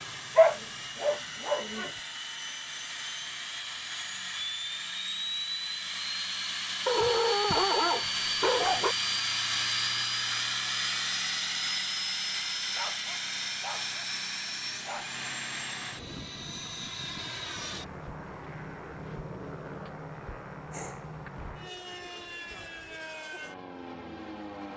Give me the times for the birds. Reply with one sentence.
The birds can't be heard in this clip.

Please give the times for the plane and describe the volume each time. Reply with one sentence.
You can hear the plane from 0.0 to 24.7 s, getting louder then quieter.